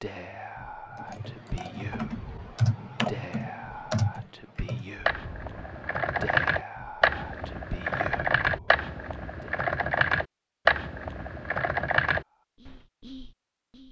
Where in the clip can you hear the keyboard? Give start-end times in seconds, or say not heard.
0.9-12.7.